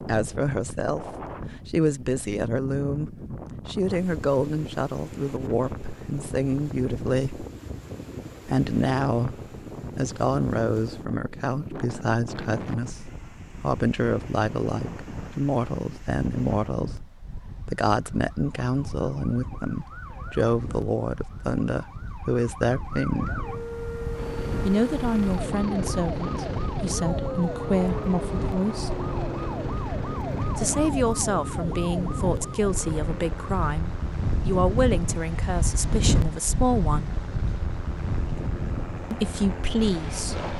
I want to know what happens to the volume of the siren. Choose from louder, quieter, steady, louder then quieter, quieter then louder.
louder.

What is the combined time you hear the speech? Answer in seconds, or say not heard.
35 s.